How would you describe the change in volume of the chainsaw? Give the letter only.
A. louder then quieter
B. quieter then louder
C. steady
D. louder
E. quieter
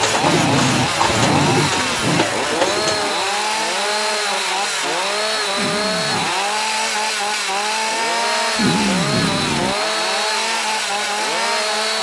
C.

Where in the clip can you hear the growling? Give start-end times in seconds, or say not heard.
0.2-2.2, 5.5-6.3, 8.6-9.8.